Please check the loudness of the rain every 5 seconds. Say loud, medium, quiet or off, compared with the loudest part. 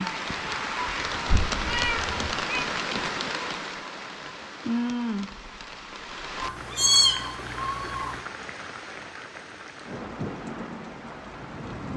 loud, medium, medium.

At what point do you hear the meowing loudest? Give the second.
7 s.